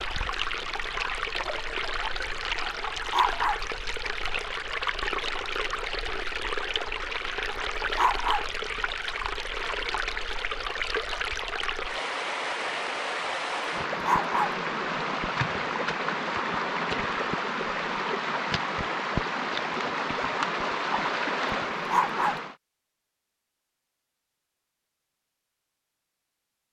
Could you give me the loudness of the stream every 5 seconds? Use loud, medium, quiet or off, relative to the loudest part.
loud, loud, loud, loud, loud, off.